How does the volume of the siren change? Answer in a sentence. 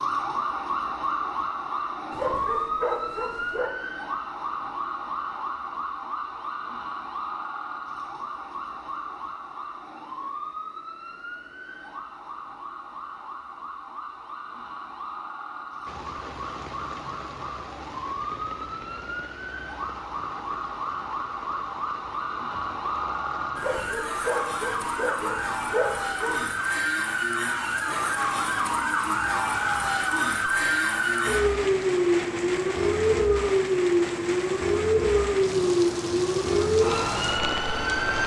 The loudness of the siren goes down, then up.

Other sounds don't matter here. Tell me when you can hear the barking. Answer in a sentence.
The barking can be heard from 2.1 to 3.7 s and from 23.6 to 26.5 s.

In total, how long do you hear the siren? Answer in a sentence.
You can hear the siren for 38 seconds altogether.